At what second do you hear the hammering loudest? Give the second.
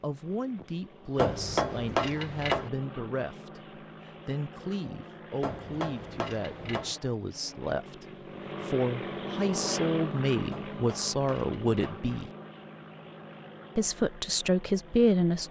2 s.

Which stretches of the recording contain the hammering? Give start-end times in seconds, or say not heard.
1.1-2.7, 5.4-7.0, 10.5-12.0.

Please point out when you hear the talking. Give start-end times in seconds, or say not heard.
0.0-12.3, 13.8-15.4.